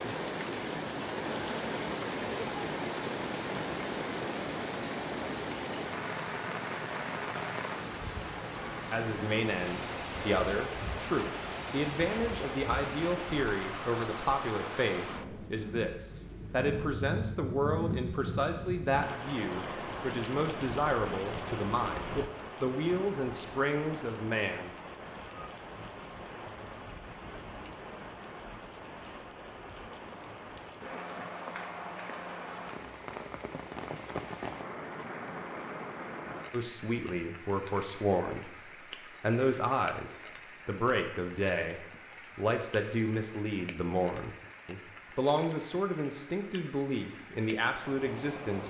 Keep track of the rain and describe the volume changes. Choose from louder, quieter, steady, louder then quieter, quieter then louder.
quieter.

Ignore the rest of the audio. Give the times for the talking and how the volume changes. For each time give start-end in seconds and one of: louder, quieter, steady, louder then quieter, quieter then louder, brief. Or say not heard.
8.9-24.7 steady
36.5-38.5 brief
39.2-48.6 steady.